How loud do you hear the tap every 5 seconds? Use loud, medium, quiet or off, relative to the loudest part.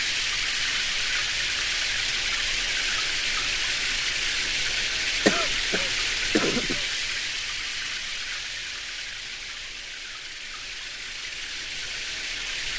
loud, loud, medium.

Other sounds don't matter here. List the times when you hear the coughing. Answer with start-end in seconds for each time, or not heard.
5.2-6.8.